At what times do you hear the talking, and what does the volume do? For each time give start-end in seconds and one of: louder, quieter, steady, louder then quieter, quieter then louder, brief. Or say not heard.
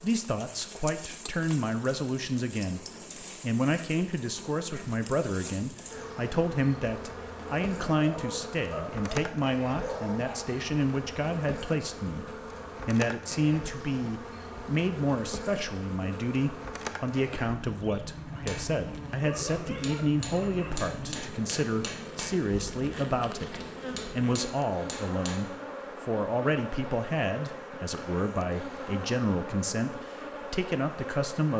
0.0-31.5 steady.